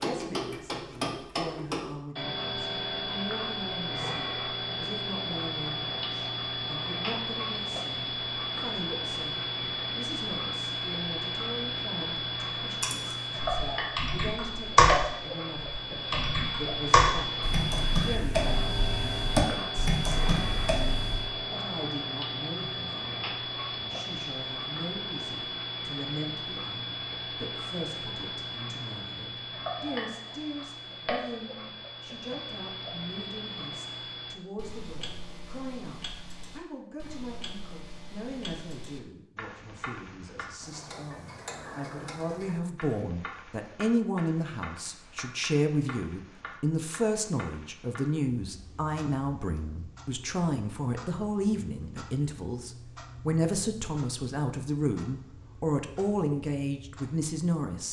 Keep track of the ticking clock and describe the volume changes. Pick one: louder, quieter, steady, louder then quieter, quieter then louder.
quieter.